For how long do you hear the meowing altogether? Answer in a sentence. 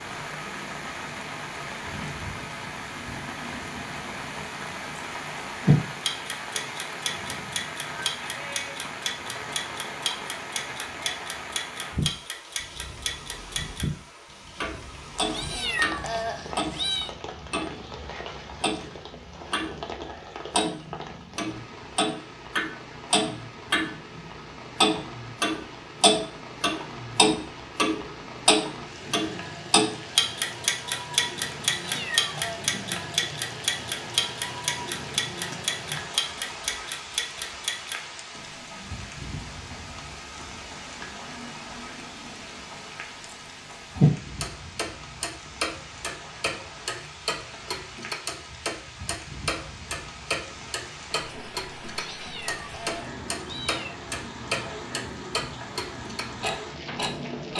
The meowing can be heard for 5 seconds in total.